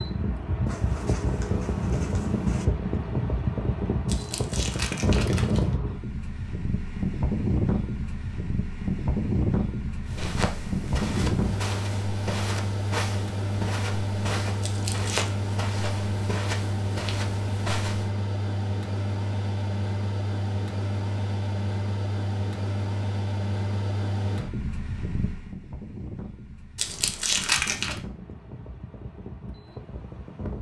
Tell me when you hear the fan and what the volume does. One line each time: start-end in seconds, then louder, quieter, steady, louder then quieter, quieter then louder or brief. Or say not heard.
0.0-30.5 quieter.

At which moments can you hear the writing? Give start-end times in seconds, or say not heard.
0.7-2.7.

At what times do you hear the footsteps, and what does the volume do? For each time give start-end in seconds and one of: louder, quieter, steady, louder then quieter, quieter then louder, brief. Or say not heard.
10.1-18.1 steady.